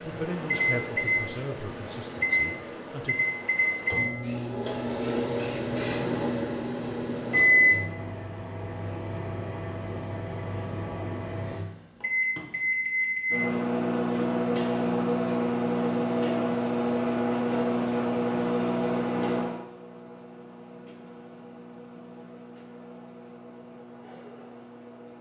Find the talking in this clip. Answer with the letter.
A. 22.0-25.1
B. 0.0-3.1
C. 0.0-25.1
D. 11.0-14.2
B.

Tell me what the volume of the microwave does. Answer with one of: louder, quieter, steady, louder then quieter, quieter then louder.
quieter.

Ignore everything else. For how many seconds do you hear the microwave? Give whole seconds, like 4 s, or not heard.
25 s.